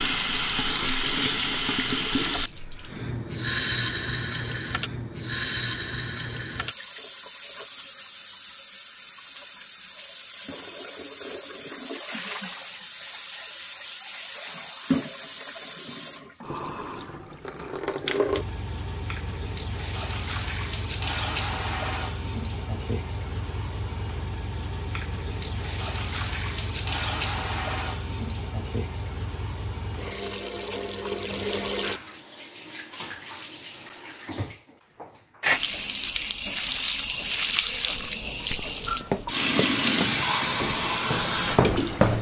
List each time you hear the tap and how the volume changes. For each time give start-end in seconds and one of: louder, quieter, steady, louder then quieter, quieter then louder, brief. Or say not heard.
0.0-42.1 quieter then louder.